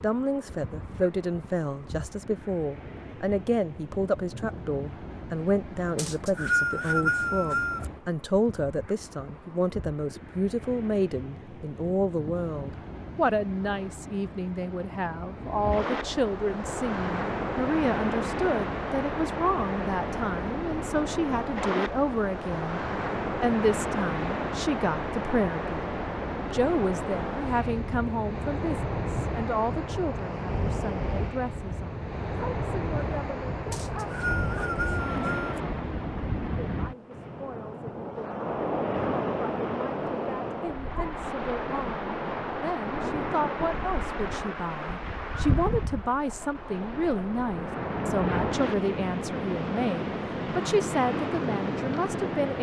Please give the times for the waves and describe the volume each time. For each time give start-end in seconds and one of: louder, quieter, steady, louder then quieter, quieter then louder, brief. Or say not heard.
0.0-52.5 louder.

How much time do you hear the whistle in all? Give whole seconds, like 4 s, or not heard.
4 s.